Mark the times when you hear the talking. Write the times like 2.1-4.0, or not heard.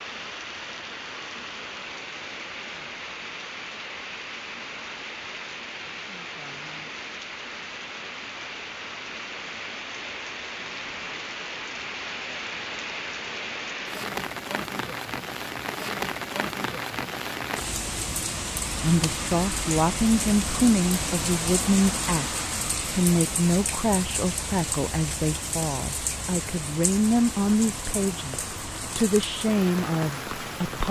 18.8-30.8.